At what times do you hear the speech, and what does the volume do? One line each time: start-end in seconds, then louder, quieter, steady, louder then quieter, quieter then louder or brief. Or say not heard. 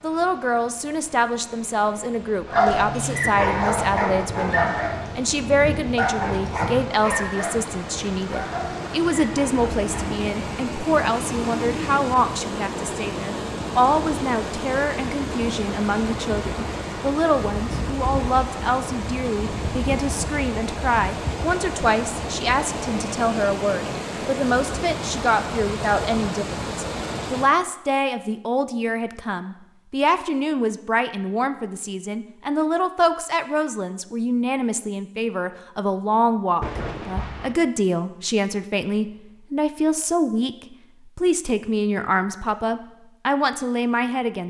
0.0-44.4 steady.